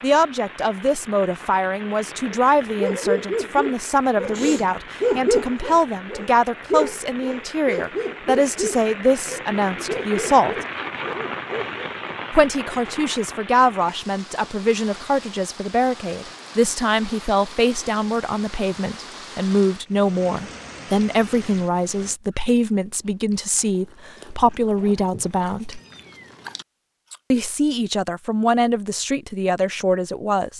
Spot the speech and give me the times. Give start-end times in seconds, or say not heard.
0.0-10.6, 12.3-25.8, 27.3-30.5.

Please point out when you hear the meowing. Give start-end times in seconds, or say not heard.
25.8-26.6.